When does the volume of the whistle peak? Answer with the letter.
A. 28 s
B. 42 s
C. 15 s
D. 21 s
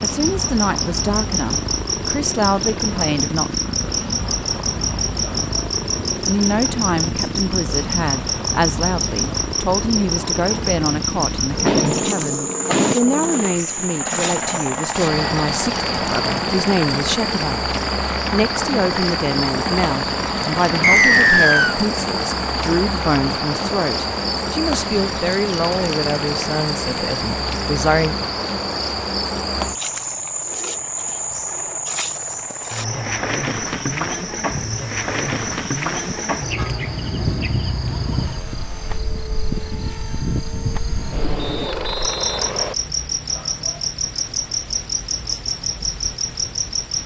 D.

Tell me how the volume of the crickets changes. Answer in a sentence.
The volume of the crickets stays about the same.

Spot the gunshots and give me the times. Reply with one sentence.
The gunshots can be heard from 11.7 to 12.9 s.